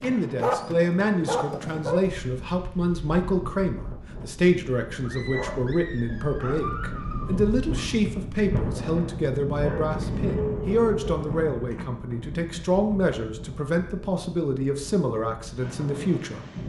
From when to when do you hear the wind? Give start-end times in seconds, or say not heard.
0.0-16.6.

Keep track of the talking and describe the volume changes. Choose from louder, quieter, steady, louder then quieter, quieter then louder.
steady.